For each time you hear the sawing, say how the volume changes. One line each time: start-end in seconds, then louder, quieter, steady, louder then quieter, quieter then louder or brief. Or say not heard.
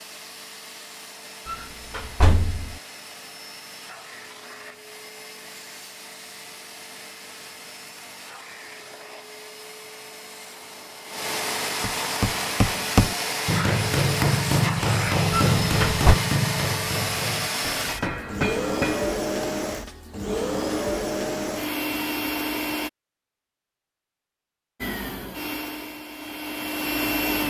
not heard.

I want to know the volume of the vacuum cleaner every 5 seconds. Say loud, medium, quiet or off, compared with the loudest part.
quiet, quiet, loud, loud, loud, loud.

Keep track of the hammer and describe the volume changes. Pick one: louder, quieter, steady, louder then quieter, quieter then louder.
quieter.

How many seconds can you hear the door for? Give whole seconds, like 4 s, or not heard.
2 s.